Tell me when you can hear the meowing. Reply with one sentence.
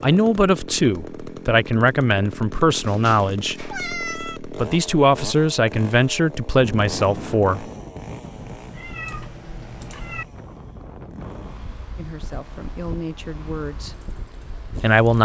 You can hear the meowing from 2.8 to 4.4 s and from 8.3 to 10.2 s.